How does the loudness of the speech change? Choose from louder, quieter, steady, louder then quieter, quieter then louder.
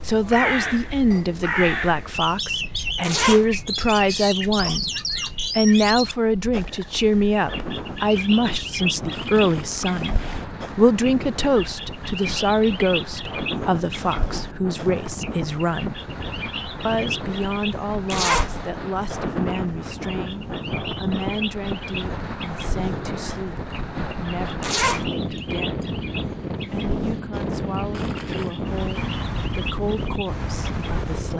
quieter.